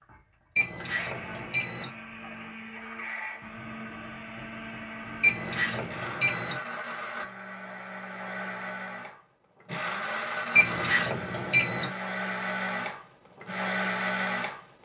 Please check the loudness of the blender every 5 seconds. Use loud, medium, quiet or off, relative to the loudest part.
medium, medium, loud.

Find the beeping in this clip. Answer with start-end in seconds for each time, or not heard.
0.6-1.9, 5.2-6.6, 10.6-11.9.